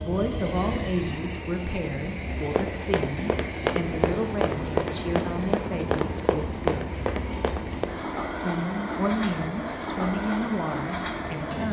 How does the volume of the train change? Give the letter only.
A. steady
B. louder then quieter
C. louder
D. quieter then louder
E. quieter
A.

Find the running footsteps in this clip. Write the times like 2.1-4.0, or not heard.
2.4-7.8.